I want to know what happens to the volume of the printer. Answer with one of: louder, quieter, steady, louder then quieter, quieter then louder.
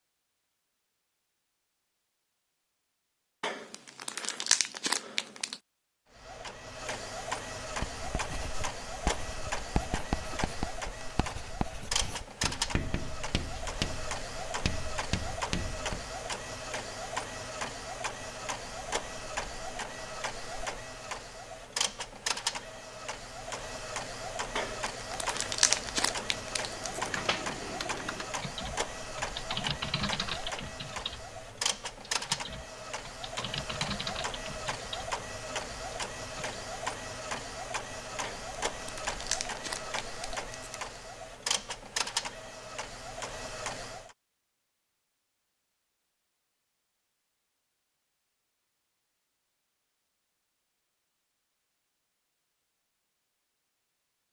steady.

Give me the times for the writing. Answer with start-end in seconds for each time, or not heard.
7.6-16.1.